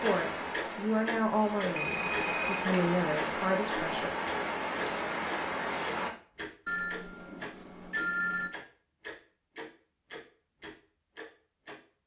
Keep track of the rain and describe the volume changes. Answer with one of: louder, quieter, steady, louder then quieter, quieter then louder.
louder.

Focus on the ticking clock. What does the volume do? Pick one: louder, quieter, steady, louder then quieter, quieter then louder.
quieter.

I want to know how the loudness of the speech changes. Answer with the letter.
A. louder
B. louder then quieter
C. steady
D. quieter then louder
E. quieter
D.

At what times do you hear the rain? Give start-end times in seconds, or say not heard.
0.0-6.1.